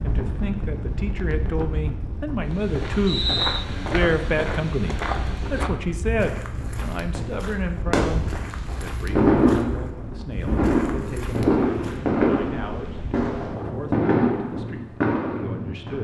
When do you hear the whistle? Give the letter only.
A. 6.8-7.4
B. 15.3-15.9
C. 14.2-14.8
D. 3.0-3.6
D.